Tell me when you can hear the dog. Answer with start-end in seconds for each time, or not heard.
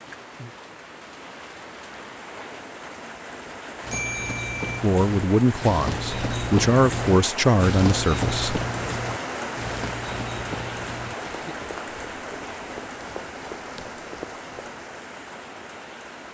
not heard.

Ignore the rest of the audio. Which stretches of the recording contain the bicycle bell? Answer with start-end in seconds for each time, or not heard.
3.9-4.8.